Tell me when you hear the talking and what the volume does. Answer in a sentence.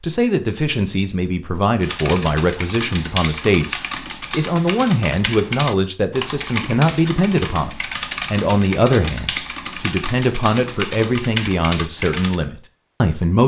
You can hear the talking from 0.0 to 13.4 s, at a steady volume.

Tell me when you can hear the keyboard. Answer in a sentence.
The keyboard can be heard from 1.8 to 12.4 s.